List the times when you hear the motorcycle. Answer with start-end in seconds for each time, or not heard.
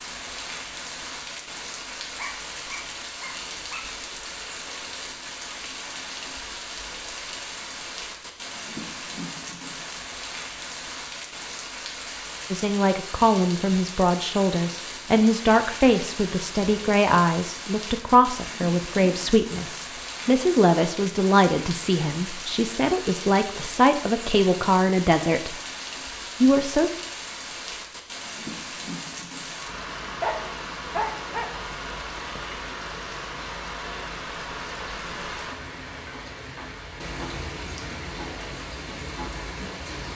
not heard.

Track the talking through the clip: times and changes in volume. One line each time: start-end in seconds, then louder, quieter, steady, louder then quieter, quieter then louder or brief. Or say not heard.
12.5-25.6 steady
26.4-26.9 brief.